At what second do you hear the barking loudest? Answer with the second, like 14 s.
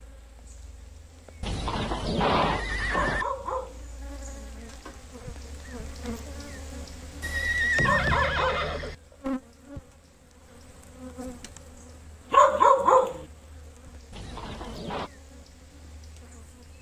13 s.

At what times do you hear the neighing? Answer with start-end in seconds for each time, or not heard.
1.4-3.2, 7.2-8.9, 14.1-15.1.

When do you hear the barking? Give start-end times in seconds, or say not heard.
2.9-3.9, 7.8-8.7, 12.3-13.2.